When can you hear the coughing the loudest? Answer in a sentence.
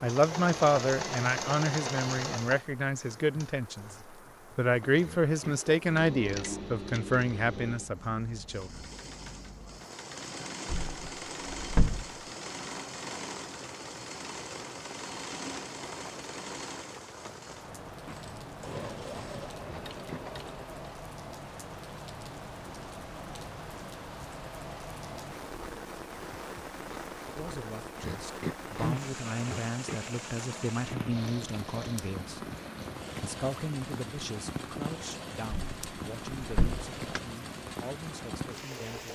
The volume of the coughing peaks at 29 seconds.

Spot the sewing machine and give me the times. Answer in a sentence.
The sewing machine can be heard from 0.0 to 20.8 s and from 28.9 to 39.1 s.